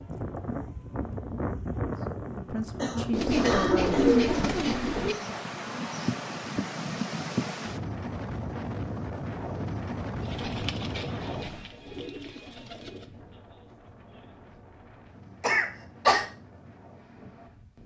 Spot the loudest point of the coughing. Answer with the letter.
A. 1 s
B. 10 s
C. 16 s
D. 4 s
C.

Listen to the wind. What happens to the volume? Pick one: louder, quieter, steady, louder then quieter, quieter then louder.
quieter.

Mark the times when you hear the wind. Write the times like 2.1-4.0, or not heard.
0.0-17.8.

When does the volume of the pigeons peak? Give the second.
4 s.